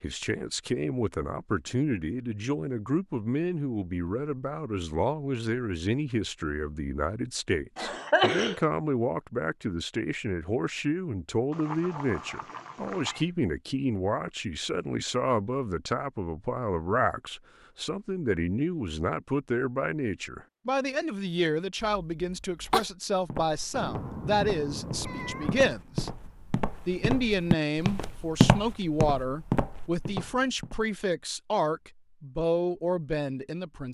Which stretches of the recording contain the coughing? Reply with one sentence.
The coughing can be heard from 7.8 to 8.6 s and from 21.8 to 22.9 s.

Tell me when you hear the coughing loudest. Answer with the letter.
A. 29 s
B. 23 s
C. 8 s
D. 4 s
C.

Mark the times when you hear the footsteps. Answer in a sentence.
You can hear the footsteps from 23.3 to 30.8 s.